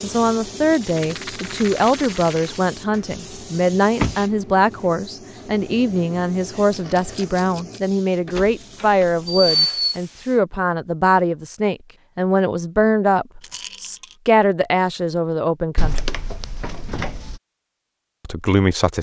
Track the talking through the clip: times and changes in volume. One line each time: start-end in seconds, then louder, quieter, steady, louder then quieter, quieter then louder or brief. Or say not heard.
0.0-16.0 steady
18.2-18.9 brief.